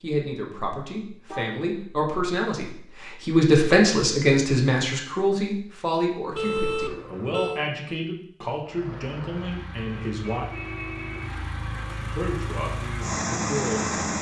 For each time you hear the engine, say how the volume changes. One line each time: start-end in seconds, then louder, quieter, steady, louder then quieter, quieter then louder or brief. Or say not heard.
8.6-14.1 louder.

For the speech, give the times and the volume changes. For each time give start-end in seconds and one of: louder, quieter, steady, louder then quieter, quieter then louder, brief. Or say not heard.
0.0-10.4 louder then quieter
12.1-14.1 brief.